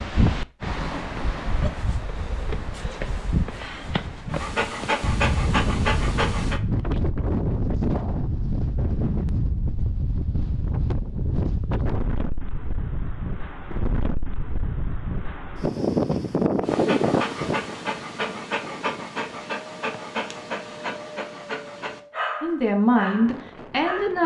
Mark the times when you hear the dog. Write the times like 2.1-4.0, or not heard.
4.3-6.6, 16.6-24.1.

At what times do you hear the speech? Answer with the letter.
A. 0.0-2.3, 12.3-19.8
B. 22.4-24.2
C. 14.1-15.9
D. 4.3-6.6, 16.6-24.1
B.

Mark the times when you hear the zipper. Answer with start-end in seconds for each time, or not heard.
not heard.